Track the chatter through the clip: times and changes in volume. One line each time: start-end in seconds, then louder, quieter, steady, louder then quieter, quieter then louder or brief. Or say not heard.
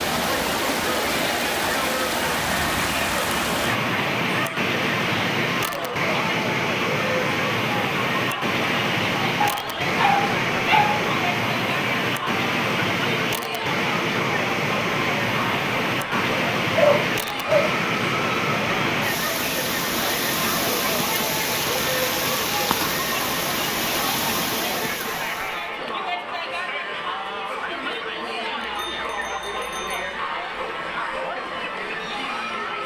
0.0-32.8 steady.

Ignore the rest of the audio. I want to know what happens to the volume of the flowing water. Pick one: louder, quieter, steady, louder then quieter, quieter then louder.
steady.